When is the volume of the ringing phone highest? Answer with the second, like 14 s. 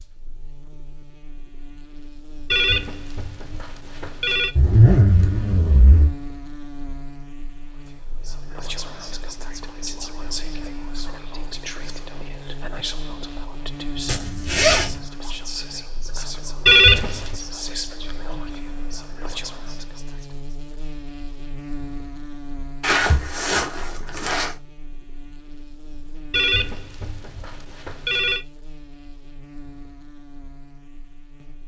17 s.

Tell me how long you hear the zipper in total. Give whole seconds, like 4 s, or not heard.
4 s.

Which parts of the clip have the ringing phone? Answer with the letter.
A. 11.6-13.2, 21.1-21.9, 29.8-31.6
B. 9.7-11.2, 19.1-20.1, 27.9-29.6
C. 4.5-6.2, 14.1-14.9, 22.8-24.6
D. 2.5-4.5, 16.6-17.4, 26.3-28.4
D.